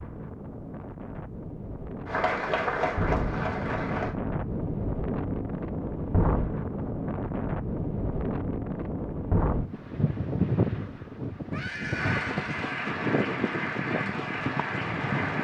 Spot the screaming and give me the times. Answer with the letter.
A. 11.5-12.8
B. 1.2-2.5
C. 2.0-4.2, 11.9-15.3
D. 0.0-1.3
A.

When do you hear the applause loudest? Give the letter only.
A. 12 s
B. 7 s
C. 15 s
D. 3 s
D.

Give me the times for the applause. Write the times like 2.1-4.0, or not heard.
2.0-4.2, 11.9-15.3.